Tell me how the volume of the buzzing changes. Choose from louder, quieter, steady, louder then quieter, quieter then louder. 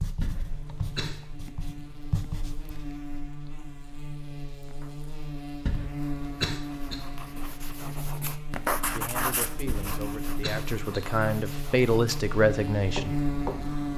louder.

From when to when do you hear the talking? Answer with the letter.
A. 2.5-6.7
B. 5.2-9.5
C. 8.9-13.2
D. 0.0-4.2
C.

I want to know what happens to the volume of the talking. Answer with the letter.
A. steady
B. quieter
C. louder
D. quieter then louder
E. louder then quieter
C.